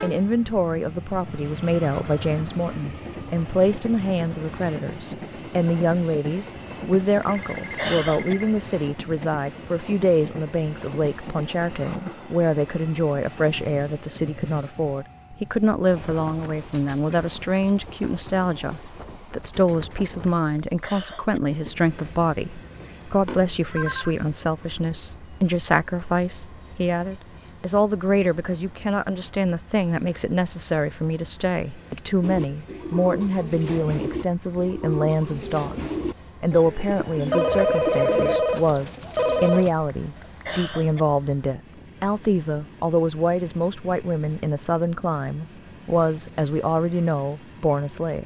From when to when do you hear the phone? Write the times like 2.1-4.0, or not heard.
7.2-8.6, 22.8-24.1, 37.3-39.7.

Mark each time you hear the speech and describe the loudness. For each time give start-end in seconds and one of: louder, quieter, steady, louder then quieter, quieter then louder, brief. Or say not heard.
0.0-48.2 steady.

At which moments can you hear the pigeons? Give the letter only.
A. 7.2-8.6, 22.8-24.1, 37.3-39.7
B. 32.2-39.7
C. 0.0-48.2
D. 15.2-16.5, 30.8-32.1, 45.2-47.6
B.